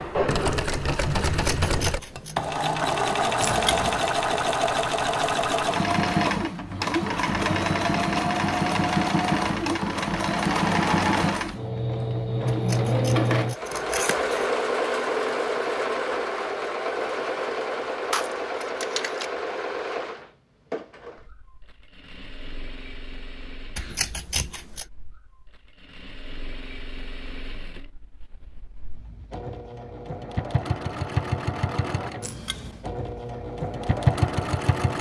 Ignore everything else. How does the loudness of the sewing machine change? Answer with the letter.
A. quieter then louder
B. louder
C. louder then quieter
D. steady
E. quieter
A.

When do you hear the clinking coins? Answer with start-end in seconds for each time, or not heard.
3.4-4.0, 18.1-19.3, 32.2-32.9.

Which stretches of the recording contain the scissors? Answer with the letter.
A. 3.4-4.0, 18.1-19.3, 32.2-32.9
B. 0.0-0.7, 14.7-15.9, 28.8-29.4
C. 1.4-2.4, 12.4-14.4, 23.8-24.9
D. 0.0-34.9
C.